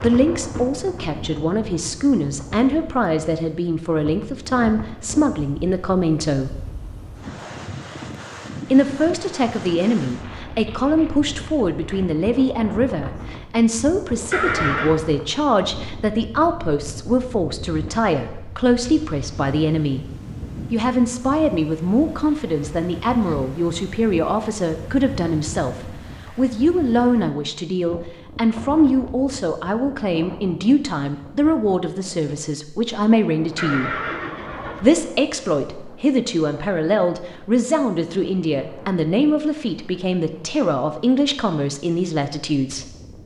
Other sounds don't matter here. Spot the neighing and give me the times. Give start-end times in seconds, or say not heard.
14.3-15.0, 33.5-35.0.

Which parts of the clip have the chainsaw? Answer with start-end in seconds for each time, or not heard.
not heard.